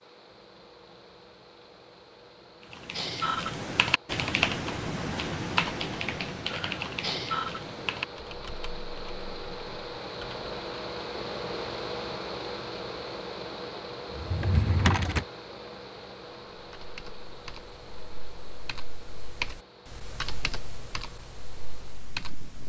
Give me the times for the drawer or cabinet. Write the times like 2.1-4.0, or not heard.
14.1-15.2.